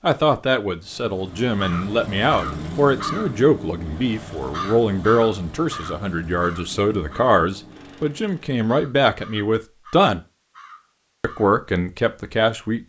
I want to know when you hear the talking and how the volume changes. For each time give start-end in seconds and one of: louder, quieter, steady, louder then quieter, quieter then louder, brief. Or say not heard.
0.0-10.2 steady
11.2-12.8 brief.